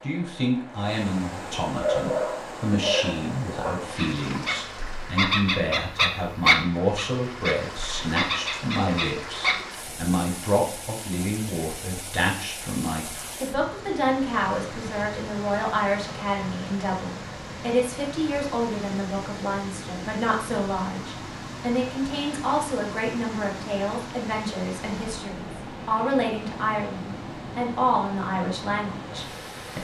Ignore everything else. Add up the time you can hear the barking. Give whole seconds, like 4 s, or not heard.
8 s.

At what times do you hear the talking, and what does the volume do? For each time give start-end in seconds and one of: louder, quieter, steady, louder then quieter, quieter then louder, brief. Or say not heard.
0.0-29.8 steady.